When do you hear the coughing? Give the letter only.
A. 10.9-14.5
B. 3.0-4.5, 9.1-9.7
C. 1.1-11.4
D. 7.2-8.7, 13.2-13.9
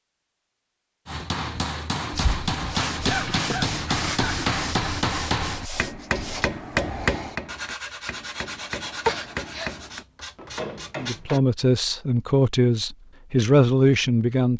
B.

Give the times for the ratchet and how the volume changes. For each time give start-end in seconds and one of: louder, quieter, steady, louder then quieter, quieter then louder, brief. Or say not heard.
not heard.